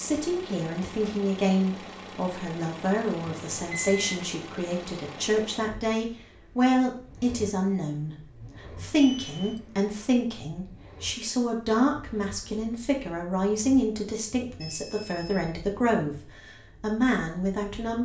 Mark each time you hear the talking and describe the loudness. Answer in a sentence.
You can hear the talking from 0.0 to 17.9 s, at a steady volume.